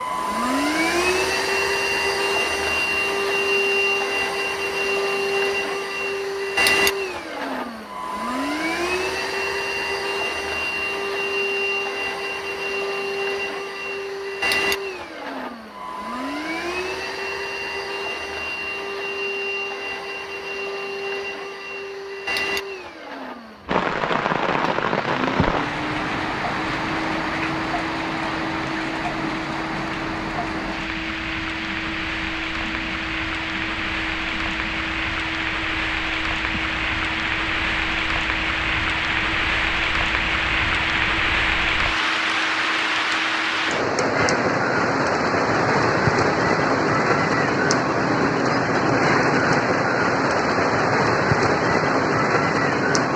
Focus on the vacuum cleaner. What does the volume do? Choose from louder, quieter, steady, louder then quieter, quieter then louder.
quieter.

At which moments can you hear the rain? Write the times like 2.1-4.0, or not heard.
23.6-53.1.